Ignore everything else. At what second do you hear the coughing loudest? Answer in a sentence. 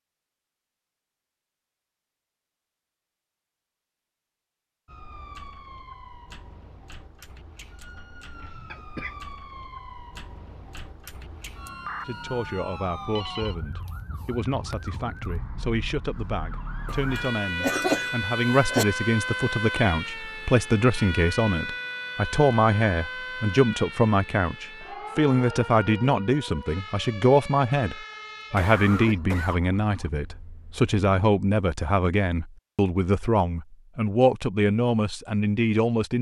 The loudest moment of the coughing is at 18 seconds.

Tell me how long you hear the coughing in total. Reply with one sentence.
The coughing can be heard for 4 seconds in total.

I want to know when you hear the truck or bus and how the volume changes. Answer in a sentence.
The truck or bus can't be heard in this clip.